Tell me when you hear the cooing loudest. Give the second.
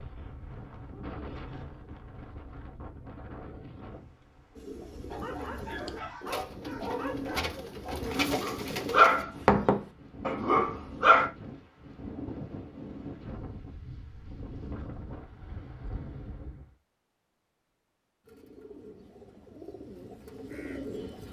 8 s.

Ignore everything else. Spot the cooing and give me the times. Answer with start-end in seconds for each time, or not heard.
4.5-9.2, 18.2-21.2.